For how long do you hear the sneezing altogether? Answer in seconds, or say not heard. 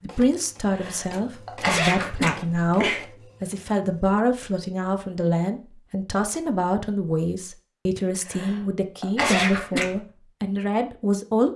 4 s.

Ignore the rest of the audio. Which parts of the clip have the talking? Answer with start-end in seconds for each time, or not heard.
0.0-11.5.